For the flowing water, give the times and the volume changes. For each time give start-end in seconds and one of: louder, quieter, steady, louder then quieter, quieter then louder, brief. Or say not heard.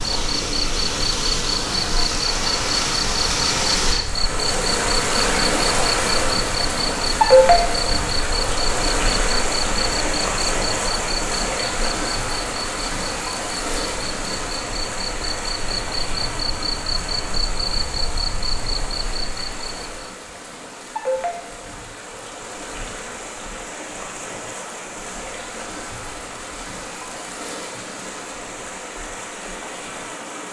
0.0-30.4 quieter.